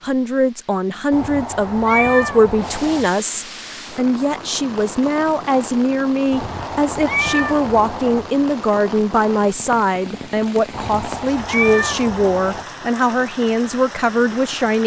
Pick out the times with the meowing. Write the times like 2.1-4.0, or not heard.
1.1-3.1, 6.3-8.3, 10.7-12.7.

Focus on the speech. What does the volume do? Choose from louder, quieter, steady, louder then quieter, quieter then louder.
steady.